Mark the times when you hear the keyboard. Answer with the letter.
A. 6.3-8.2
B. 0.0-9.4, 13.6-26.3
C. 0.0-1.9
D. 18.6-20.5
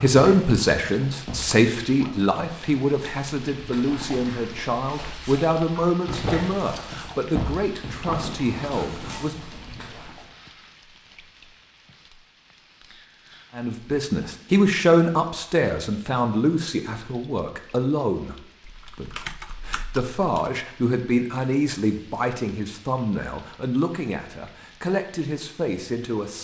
D.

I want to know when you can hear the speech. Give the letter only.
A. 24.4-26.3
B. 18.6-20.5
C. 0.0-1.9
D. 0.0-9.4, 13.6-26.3
D.